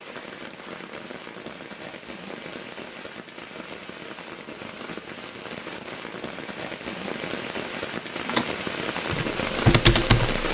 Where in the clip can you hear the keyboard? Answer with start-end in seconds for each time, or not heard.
8.2-10.4.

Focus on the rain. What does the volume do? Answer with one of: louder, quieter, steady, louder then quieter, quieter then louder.
louder.